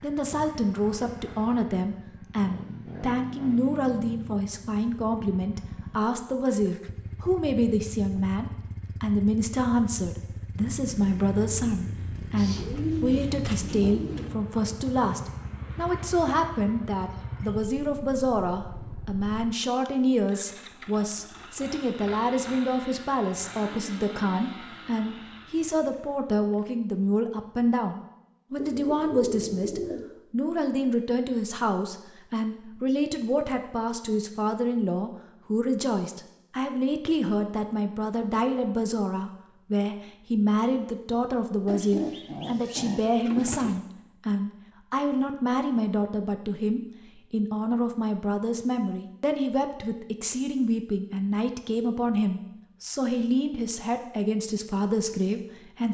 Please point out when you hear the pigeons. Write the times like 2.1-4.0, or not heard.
12.3-14.3, 28.6-30.1, 41.6-43.8.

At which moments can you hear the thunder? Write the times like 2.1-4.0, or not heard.
not heard.